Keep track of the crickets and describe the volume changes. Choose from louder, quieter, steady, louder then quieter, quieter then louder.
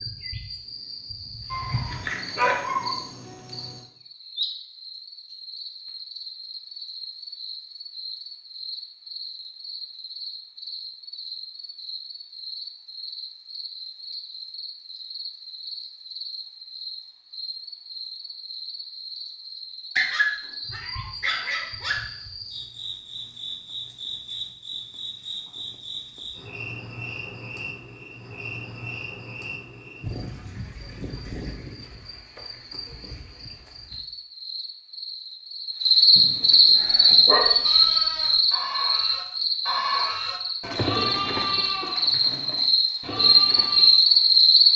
louder.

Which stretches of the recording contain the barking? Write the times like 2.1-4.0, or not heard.
1.5-3.0, 19.9-21.9, 36.1-37.5.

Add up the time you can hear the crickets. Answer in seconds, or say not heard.
45 s.